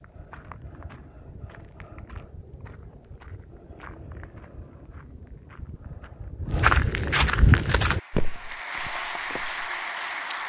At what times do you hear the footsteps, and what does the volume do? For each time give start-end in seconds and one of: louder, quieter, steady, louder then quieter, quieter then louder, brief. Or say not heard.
0.0-9.8 louder then quieter.